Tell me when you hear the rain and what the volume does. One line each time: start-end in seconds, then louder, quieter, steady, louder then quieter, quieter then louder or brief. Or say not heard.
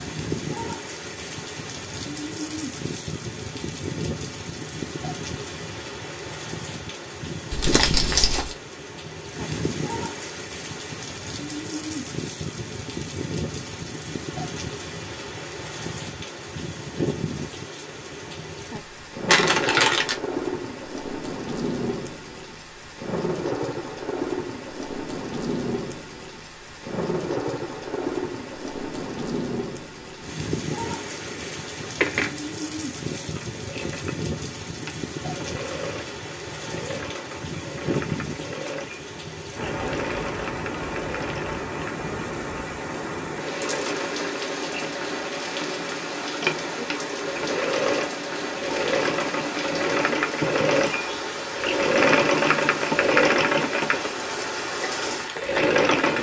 0.0-56.1 steady.